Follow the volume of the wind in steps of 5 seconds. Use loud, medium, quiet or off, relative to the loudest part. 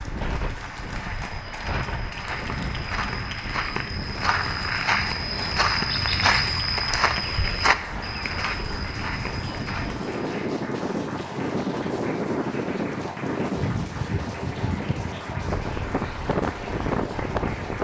medium, medium, loud, loud.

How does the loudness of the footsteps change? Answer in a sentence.
The volume of the footsteps goes up, then down.